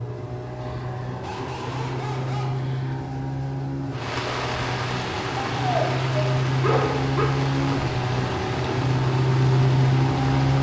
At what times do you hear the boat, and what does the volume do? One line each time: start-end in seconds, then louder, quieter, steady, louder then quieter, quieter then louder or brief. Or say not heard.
0.0-10.5 louder.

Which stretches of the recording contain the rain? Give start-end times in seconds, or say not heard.
3.9-10.5.